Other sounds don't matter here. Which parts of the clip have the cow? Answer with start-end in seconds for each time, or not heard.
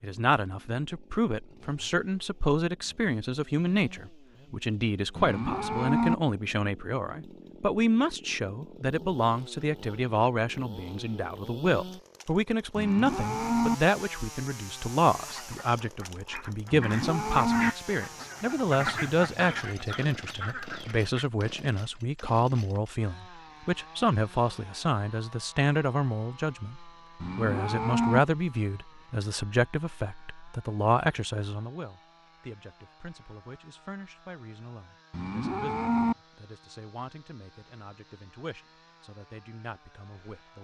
5.2-6.2, 12.8-13.8, 16.7-17.7, 27.2-28.2, 35.1-36.1.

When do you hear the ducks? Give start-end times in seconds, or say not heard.
15.2-21.2.